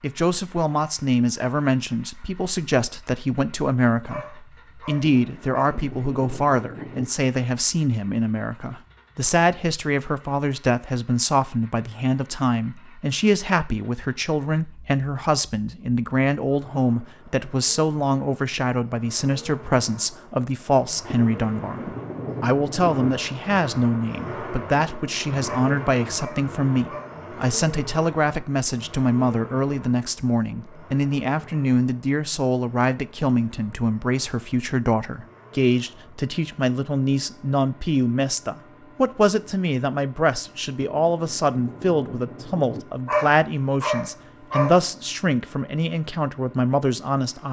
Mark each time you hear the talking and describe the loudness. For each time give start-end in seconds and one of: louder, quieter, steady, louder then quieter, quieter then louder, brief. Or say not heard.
0.0-47.4 steady.